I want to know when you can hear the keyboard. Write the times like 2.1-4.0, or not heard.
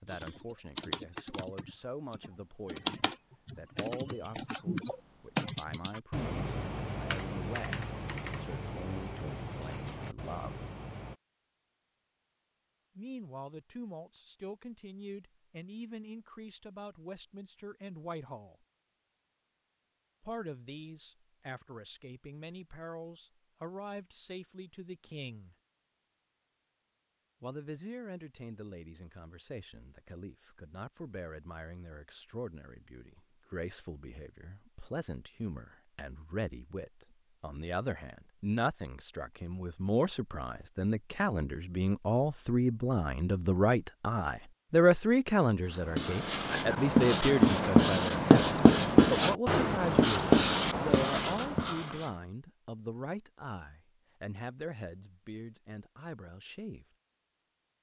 0.1-11.2.